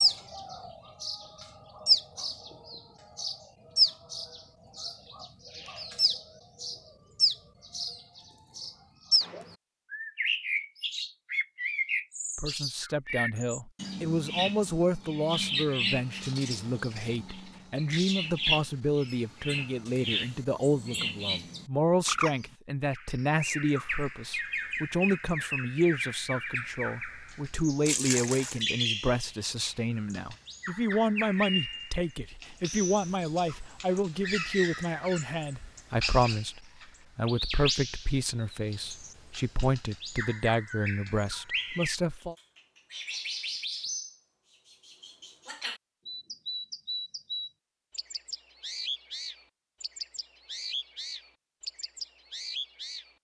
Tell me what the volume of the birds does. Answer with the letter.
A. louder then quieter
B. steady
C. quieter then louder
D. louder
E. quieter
E.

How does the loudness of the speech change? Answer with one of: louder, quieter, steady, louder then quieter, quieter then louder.
steady.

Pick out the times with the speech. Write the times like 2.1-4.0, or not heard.
12.3-42.4.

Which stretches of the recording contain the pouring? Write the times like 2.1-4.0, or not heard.
27.9-28.6.